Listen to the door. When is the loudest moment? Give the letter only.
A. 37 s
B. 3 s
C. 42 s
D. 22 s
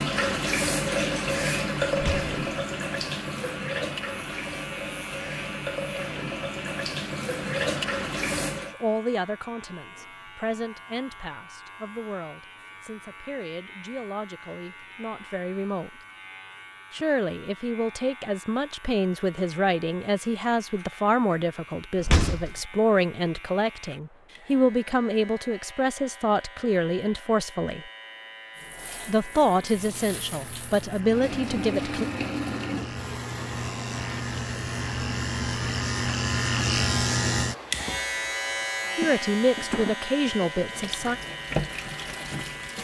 D.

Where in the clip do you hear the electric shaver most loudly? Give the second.
37 s.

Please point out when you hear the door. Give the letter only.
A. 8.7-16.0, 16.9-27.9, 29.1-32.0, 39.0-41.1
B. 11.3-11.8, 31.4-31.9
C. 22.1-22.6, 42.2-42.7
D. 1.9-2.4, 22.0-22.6
D.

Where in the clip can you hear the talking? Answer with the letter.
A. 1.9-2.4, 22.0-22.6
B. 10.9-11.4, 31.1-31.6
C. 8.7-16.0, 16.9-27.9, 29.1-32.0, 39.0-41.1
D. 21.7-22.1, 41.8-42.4
C.